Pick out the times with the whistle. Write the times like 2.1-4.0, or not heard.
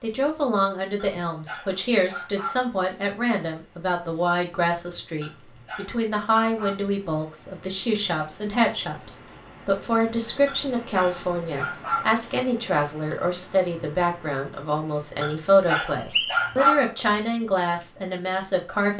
15.8-16.5.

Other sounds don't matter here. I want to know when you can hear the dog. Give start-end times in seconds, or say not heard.
0.9-2.7, 5.2-6.8, 10.4-12.2, 15.2-16.9.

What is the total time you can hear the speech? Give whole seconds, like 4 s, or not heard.
19 s.